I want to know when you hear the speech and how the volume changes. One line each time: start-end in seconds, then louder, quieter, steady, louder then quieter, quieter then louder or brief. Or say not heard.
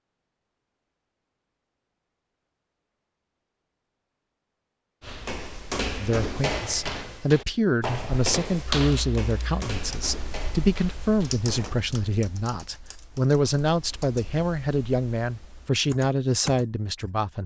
6.0-17.4 steady.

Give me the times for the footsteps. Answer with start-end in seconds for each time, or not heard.
5.0-11.8.